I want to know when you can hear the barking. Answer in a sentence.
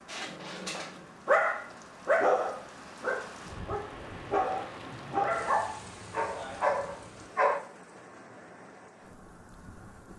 You can hear the barking from 0.1 to 7.6 s.